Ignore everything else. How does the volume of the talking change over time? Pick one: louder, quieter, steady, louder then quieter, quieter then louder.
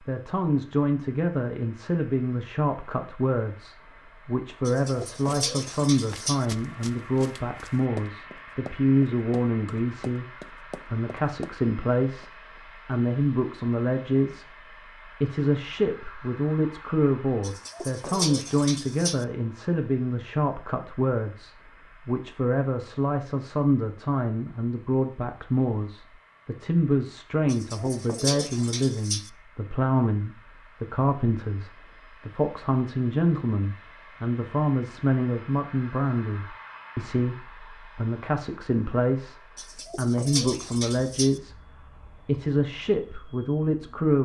steady.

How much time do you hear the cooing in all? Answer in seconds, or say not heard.
7 s.